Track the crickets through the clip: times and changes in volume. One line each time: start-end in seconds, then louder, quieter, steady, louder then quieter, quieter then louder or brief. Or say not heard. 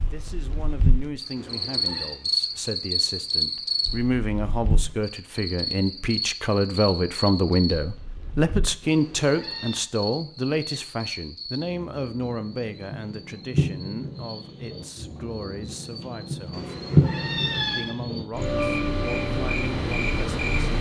0.0-20.7 quieter then louder.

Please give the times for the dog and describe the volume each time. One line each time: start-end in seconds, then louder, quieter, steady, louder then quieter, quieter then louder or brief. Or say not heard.
not heard.